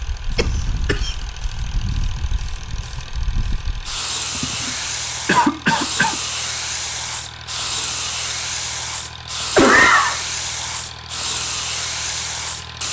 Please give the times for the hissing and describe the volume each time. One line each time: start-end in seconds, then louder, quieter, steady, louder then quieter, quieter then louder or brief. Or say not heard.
0.0-12.8 louder.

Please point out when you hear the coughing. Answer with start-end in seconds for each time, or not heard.
0.3-1.1, 4.3-6.2, 9.6-10.2.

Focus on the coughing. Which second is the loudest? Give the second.
10 s.